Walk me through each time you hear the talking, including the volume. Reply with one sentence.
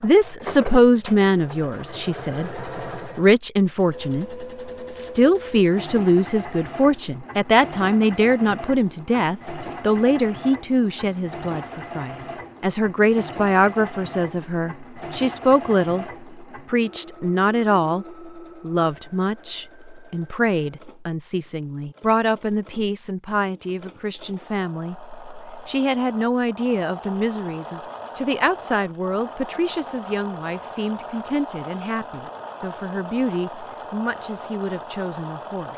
You can hear the talking from 0.0 to 35.7 s, getting quieter.